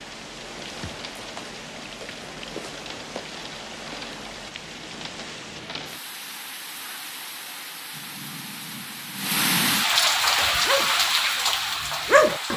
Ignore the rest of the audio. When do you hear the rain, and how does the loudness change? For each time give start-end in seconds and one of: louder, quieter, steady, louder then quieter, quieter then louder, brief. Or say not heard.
0.0-12.5 louder.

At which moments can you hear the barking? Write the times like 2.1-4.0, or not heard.
10.3-12.5.